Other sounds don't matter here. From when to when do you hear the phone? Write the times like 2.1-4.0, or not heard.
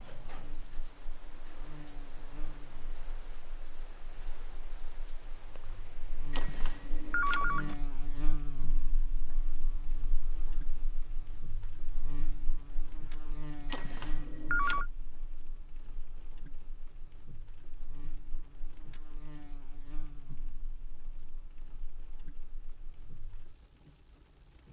6.3-7.8, 13.7-14.8.